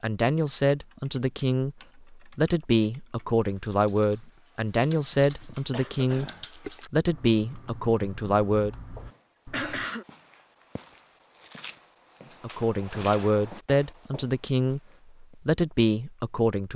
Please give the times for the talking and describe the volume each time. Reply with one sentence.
You can hear the talking from 0.0 to 8.8 s, at a steady volume; and from 12.4 to 16.7 s, at a steady volume.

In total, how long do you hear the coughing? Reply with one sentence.
The coughing can be heard for 2 seconds in total.